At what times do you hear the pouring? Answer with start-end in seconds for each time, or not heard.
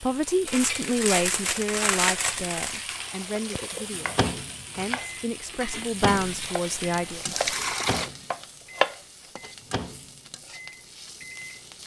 2.8-4.0, 7.2-8.1.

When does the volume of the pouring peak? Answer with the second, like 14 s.
8 s.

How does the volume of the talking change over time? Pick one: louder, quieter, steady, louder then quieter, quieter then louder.
quieter then louder.